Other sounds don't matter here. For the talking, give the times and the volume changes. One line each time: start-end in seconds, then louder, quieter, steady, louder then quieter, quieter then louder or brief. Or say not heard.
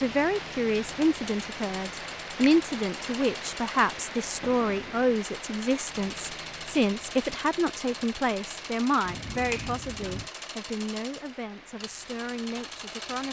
0.0-13.2 quieter.